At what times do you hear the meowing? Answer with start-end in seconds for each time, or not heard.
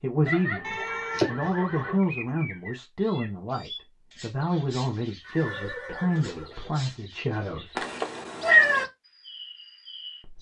0.7-1.9, 7.8-8.8.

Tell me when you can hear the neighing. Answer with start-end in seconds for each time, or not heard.
0.2-2.0, 5.2-6.8.